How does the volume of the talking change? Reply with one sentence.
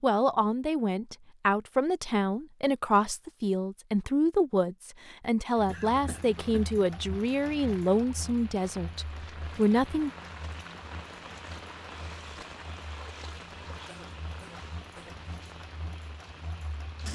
The loudness of the talking stays about the same.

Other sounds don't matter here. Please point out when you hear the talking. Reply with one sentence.
The talking can be heard from 0.0 to 10.1 s.